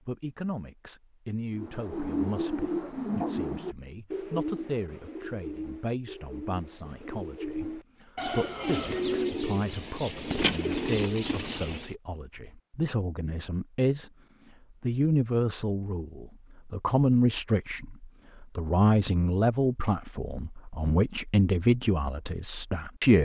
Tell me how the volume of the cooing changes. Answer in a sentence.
The volume of the cooing goes down, then up.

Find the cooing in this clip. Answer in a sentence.
You can hear the cooing from 1.6 to 11.9 s.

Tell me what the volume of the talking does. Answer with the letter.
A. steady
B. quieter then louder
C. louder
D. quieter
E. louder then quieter
C.